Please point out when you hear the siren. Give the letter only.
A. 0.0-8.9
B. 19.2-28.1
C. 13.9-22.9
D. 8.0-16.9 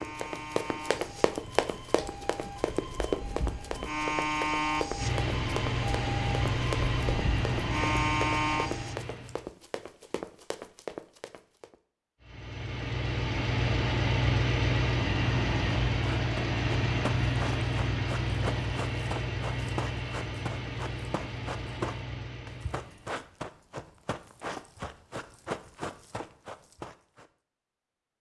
A.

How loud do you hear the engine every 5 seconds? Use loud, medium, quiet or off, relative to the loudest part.
quiet, loud, loud, loud, medium, off.